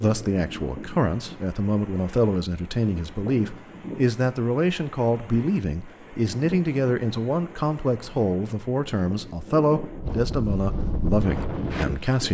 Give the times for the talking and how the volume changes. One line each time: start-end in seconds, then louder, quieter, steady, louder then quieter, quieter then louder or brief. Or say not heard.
0.0-12.2 steady.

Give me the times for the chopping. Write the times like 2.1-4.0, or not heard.
not heard.